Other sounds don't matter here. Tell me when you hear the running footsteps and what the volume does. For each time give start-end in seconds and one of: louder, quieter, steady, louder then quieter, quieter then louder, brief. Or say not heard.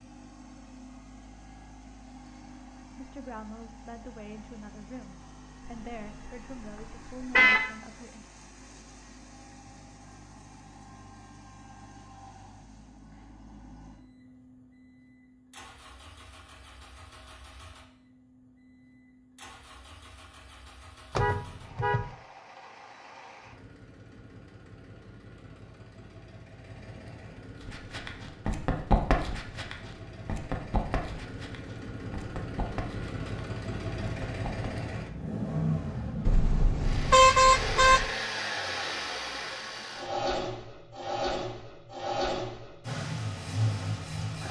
27.6-34.8 quieter.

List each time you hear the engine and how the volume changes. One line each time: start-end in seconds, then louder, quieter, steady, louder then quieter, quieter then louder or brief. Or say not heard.
0.0-44.4 louder.